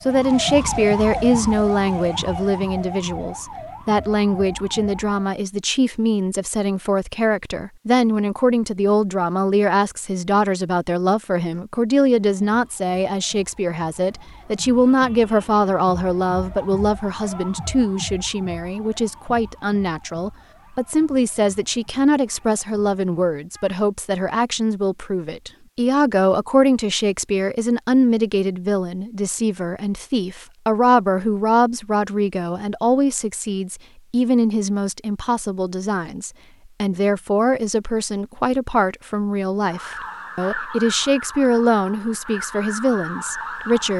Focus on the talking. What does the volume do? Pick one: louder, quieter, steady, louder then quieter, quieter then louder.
steady.